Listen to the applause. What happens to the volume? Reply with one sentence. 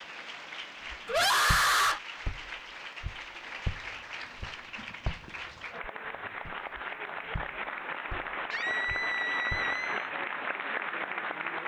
The volume of the applause goes up.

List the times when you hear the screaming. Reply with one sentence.
The screaming can be heard from 1.1 to 2.0 s and from 8.5 to 10.1 s.